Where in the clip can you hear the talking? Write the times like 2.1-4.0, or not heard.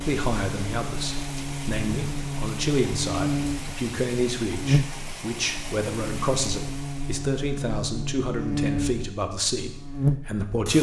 0.0-10.7.